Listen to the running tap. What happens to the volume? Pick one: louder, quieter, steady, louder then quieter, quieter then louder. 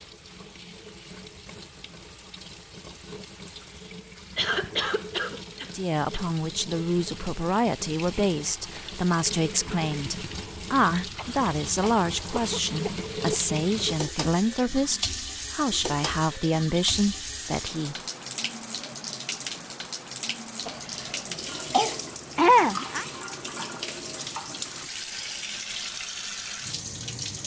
louder.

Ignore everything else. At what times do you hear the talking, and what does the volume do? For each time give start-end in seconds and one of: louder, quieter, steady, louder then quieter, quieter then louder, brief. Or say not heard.
5.7-17.9 steady.